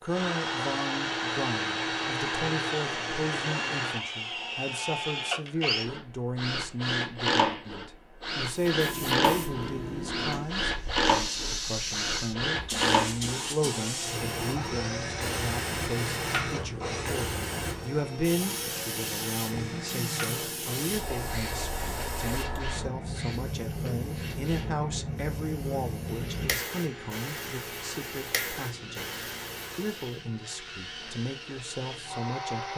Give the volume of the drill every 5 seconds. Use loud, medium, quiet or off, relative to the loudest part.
loud, loud, loud, medium, quiet, quiet, medium.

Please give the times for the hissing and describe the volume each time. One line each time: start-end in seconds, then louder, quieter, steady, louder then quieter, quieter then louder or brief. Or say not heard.
8.4-30.1 steady.